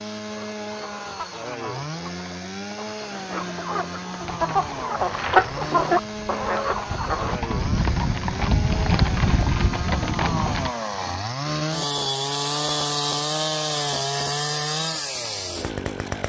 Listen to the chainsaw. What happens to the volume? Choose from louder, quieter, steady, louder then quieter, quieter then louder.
louder.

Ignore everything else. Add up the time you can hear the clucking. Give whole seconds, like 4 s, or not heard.
7 s.